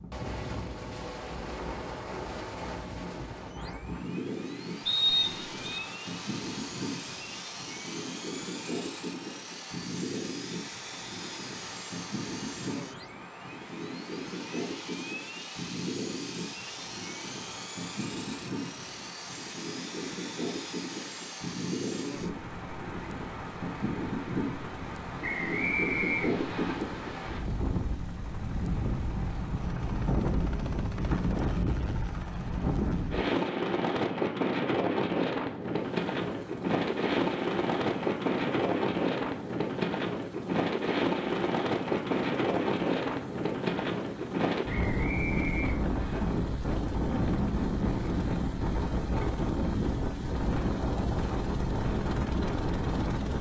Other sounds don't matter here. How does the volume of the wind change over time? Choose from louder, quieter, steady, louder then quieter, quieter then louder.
louder.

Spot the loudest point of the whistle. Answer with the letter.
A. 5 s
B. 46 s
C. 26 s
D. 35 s
A.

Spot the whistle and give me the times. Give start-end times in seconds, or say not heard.
4.8-5.8, 25.2-26.8, 44.6-46.2.